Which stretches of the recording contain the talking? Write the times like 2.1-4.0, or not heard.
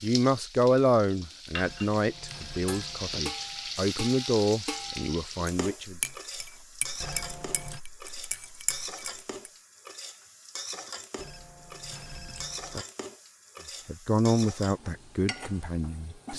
0.0-6.0, 13.8-16.3.